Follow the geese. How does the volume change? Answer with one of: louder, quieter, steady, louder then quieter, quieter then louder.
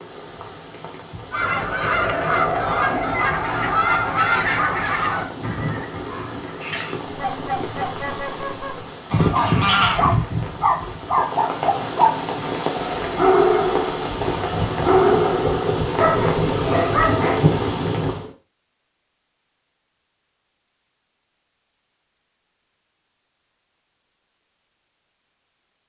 quieter then louder.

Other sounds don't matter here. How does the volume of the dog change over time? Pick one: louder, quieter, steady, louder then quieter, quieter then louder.
steady.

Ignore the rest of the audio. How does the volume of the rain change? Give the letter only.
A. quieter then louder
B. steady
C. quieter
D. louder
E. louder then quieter
D.